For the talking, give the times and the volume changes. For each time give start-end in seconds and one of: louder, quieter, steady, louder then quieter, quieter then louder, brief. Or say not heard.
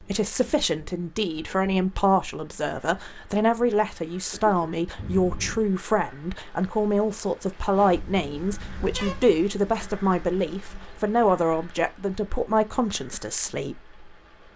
0.0-13.8 steady.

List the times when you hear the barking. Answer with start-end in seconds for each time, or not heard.
not heard.